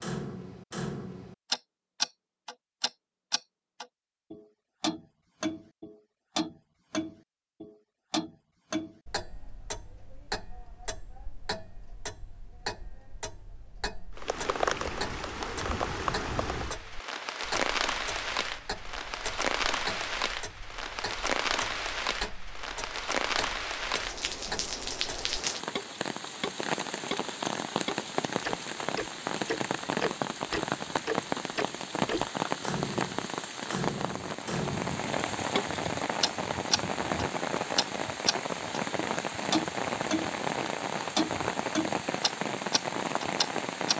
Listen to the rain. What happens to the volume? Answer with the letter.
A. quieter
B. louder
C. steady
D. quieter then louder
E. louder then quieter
C.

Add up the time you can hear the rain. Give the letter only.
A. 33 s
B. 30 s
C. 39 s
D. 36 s
B.